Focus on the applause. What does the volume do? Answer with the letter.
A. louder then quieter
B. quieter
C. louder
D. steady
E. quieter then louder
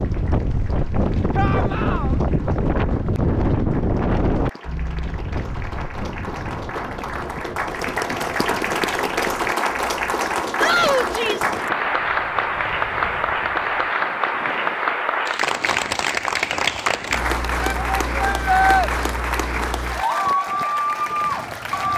C.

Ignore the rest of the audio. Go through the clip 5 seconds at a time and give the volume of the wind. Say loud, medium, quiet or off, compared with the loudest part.
loud, quiet, quiet, quiet, quiet.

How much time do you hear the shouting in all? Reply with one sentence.
You can hear the shouting for 3 seconds altogether.